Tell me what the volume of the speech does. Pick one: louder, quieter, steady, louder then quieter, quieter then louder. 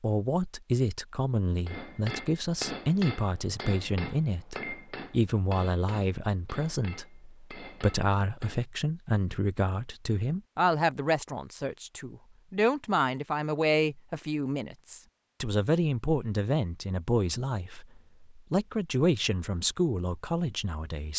steady.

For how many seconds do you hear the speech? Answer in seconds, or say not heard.
21 s.